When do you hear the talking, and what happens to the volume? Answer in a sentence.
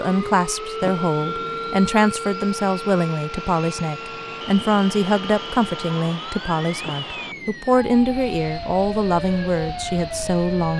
The talking can be heard from 0.0 to 10.7 s, at a steady volume.